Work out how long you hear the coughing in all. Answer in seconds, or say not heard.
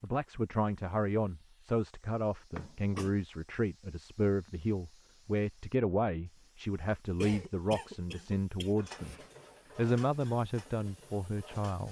2 s.